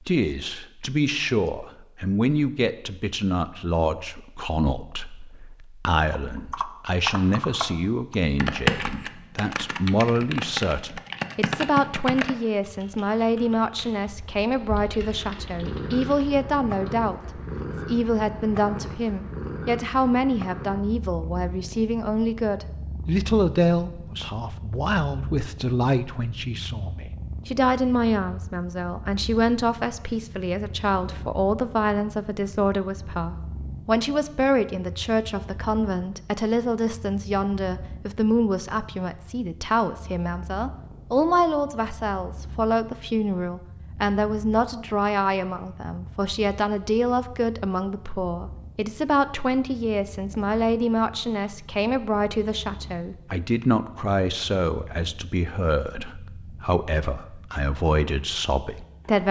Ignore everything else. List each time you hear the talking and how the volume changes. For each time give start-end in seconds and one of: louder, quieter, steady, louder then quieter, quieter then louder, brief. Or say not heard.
0.1-59.2 steady.